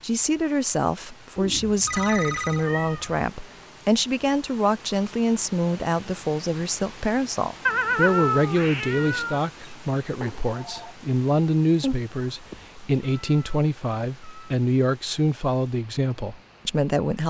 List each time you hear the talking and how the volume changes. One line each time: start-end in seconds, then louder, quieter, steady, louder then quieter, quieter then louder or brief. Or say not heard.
0.0-17.2 steady.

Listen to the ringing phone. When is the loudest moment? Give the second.
2 s.